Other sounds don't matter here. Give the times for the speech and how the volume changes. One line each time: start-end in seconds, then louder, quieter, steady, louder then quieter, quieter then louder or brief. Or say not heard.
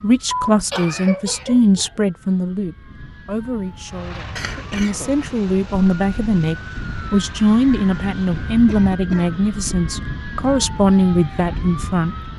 0.0-12.2 quieter then louder.